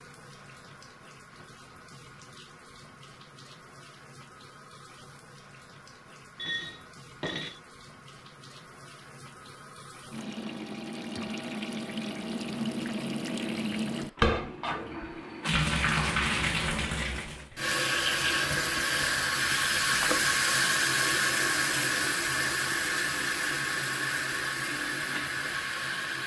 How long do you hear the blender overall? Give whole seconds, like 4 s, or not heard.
not heard.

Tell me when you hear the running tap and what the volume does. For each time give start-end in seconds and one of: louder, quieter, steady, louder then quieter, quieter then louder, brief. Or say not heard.
0.0-26.2 louder.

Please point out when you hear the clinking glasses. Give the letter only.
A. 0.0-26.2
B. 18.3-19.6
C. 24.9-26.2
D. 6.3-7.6
D.